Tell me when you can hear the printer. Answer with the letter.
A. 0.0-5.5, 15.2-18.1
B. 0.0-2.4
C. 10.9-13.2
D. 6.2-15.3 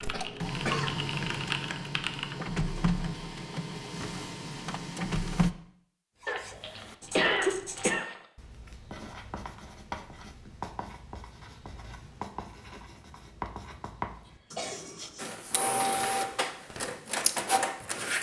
A.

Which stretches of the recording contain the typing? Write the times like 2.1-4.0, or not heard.
0.0-2.4.